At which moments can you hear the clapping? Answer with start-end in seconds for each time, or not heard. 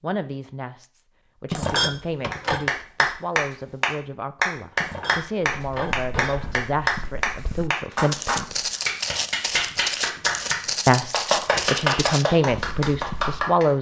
2.3-13.7.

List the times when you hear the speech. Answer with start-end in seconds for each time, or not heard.
0.0-8.7, 10.8-13.7.